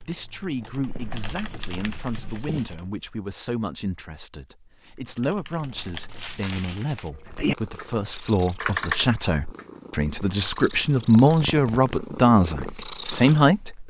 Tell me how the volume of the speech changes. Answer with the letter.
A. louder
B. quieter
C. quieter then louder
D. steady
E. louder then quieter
A.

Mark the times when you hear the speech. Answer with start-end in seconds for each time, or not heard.
0.0-13.8.